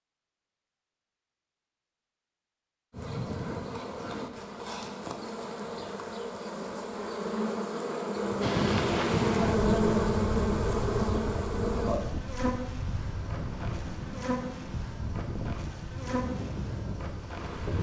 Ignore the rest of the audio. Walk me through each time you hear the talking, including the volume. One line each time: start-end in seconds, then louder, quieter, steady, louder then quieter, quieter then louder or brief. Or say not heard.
not heard.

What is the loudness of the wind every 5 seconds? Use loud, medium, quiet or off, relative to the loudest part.
off, loud, medium, medium.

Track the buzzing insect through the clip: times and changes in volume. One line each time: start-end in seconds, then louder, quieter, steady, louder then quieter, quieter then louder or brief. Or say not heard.
2.9-17.7 louder then quieter.